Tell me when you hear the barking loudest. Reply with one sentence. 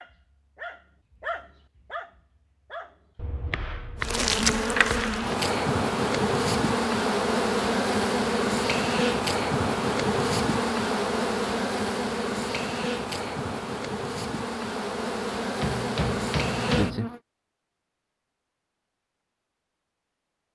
The volume of the barking peaks at 1 second.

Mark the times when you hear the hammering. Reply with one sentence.
The hammering can be heard from 3.1 to 5.2 s and from 15.6 to 17.1 s.